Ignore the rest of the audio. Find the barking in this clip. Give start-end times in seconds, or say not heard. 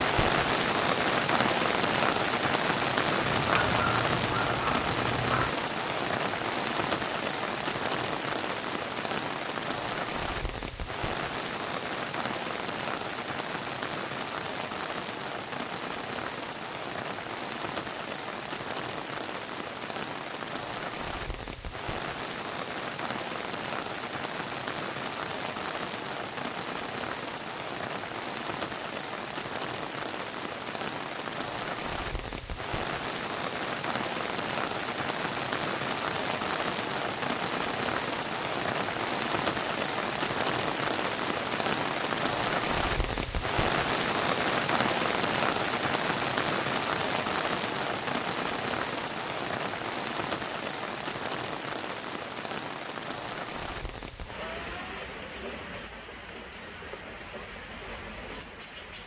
3.1-5.5.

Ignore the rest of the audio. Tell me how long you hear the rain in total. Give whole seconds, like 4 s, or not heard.
59 s.